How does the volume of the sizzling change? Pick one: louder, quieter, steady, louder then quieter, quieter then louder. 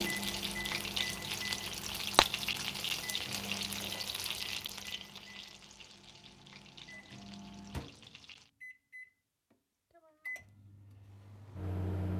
quieter.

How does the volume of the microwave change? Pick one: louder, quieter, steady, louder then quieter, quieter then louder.
quieter then louder.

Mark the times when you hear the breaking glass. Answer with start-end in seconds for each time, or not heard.
2.1-2.6.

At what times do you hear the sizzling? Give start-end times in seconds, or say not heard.
0.0-8.5.